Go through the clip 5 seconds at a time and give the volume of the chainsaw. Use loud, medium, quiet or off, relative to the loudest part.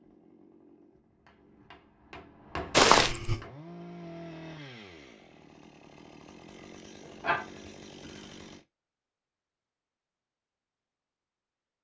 loud, loud, off.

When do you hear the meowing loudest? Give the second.
3 s.